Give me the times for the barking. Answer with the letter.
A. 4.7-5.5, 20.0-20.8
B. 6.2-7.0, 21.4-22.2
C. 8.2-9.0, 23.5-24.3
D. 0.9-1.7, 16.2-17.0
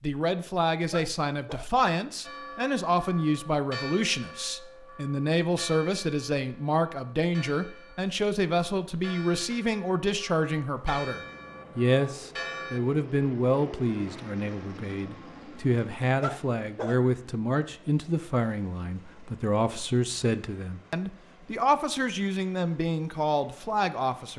D.